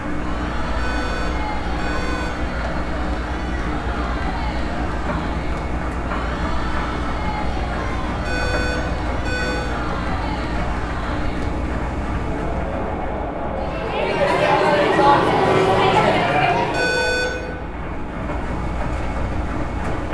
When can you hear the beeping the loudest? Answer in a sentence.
The loudest moment of the beeping is at 17 seconds.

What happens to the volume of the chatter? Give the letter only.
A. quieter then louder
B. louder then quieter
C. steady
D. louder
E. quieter
D.